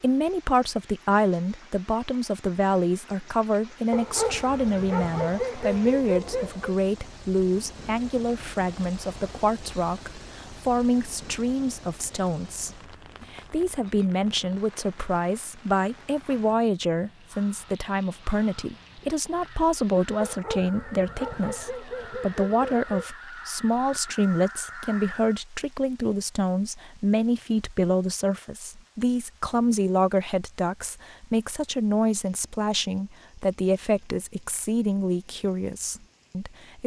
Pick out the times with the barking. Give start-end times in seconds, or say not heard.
3.9-6.8, 20.2-23.1.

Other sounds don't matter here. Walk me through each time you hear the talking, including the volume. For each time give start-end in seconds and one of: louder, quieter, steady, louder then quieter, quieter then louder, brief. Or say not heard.
0.0-36.8 steady.